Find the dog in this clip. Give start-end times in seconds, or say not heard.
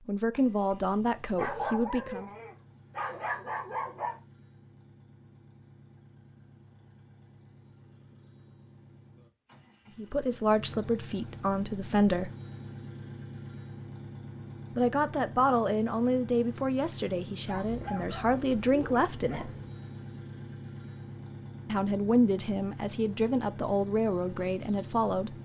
1.4-4.2, 17.4-19.7.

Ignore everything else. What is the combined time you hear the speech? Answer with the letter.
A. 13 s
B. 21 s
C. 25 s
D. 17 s
A.